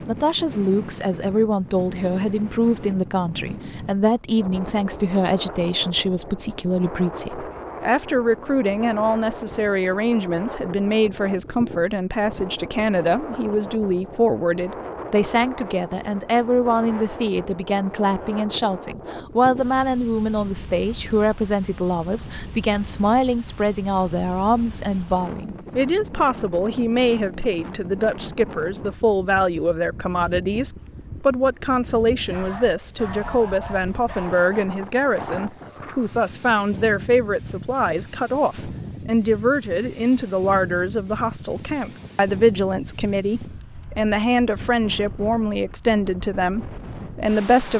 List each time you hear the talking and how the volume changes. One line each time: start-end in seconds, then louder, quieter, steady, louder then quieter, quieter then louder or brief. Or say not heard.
0.1-47.7 steady.